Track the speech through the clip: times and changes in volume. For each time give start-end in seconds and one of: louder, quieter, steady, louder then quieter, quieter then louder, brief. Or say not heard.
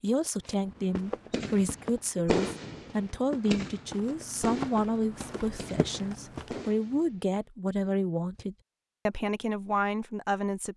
0.0-10.7 steady.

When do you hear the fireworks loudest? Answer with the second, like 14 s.
2 s.